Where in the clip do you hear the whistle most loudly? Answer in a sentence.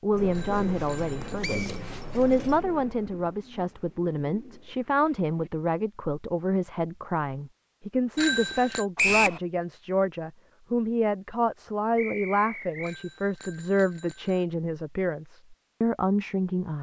The volume of the whistle peaks at 9 seconds.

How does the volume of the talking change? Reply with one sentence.
The loudness of the talking stays about the same.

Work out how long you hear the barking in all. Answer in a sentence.
You can't hear the barking here.